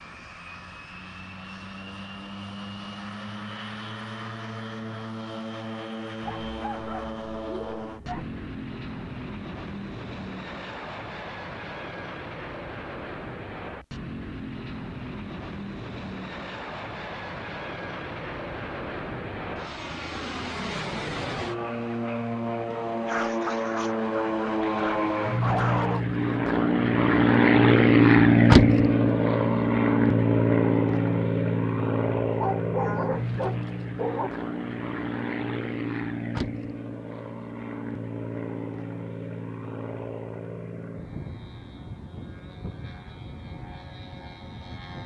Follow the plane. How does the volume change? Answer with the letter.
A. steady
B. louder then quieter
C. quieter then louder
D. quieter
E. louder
B.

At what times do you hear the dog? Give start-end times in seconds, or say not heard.
6.2-8.3, 23.1-26.1, 32.4-34.3.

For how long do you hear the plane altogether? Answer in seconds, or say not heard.
45 s.